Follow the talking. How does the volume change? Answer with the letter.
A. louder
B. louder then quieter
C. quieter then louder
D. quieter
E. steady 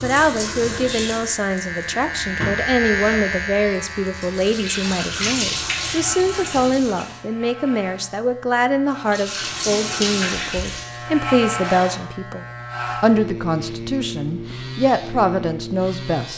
E.